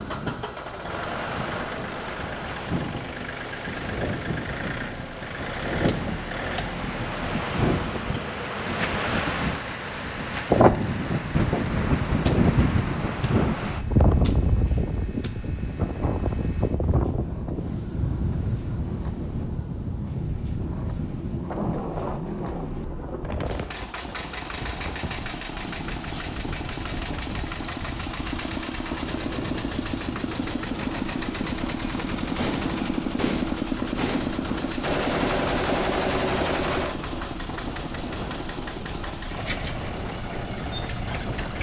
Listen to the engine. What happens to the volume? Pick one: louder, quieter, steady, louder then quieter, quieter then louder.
quieter then louder.